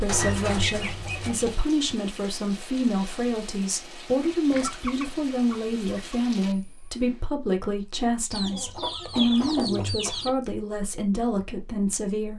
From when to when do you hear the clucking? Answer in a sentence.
You can hear the clucking from 0.1 to 1.6 s, from 4.5 to 6.2 s and from 8.3 to 10.3 s.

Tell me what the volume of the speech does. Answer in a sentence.
The loudness of the speech stays about the same.